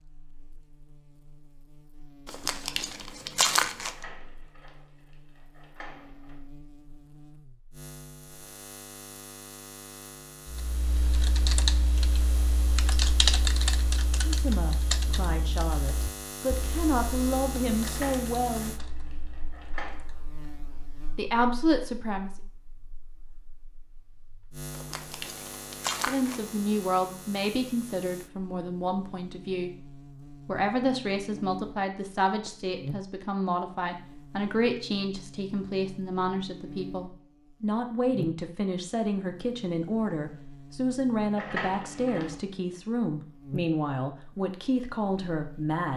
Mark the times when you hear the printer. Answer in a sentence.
You can't hear the printer here.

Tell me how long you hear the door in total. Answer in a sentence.
You can hear the door for 6 seconds altogether.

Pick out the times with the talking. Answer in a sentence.
The talking can be heard from 14.2 to 18.8 s, from 21.1 to 22.4 s, from 25.9 to 29.7 s and from 30.4 to 45.9 s.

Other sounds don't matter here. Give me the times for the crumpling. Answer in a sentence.
The crumpling can be heard from 2.2 to 4.0 s and from 24.7 to 26.5 s.